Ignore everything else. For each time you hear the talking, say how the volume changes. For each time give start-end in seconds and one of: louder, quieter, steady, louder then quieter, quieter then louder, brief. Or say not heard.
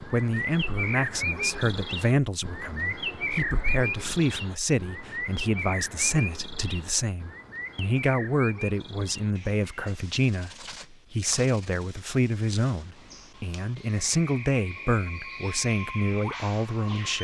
0.0-17.1 steady.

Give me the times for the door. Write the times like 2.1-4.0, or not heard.
not heard.